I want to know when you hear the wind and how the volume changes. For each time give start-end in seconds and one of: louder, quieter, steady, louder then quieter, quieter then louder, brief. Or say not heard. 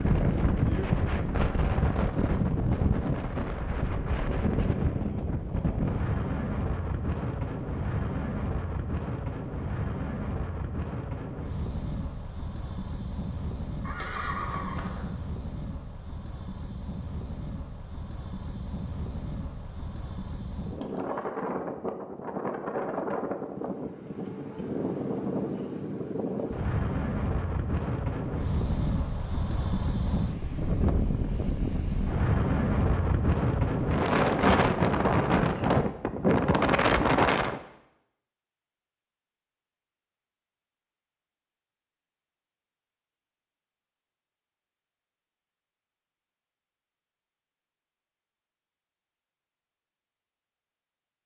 0.0-37.6 quieter then louder.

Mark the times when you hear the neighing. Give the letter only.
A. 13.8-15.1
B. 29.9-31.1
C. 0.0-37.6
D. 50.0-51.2
A.